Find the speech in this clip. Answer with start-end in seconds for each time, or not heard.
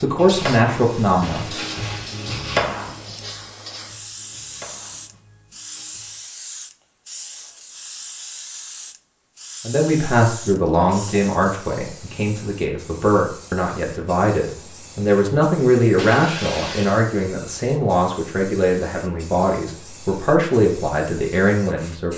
0.0-1.6, 9.7-22.1.